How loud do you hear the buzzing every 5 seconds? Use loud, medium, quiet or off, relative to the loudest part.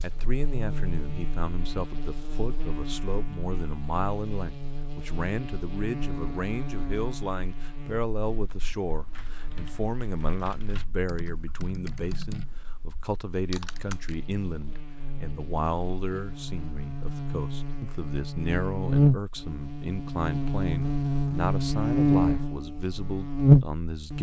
quiet, quiet, quiet, medium, loud.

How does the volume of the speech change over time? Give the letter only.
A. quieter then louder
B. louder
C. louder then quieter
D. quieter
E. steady
E.